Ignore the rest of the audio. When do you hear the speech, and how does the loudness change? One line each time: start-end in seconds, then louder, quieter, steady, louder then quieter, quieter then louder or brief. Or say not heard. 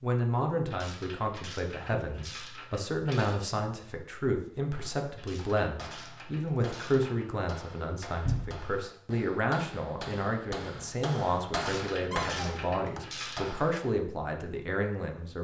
0.0-15.3 steady.